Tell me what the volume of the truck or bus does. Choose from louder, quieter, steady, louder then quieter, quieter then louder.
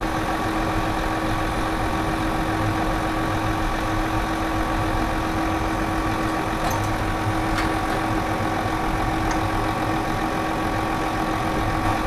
steady.